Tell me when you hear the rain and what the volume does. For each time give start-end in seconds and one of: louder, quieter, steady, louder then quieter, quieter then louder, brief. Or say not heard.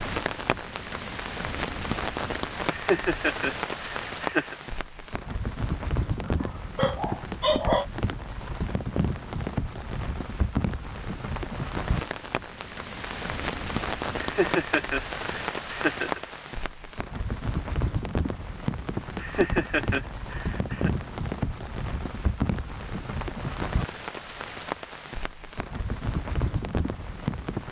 0.0-27.6 steady.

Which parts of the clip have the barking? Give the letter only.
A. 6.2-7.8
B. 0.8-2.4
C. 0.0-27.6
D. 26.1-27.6
A.